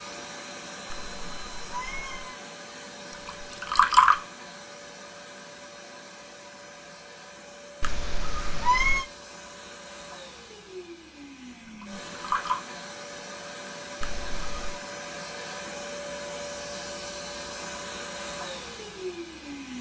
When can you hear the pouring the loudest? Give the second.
4 s.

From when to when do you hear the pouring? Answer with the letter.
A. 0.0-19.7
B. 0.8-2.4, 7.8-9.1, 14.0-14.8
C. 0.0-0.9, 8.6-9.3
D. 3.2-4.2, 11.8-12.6
D.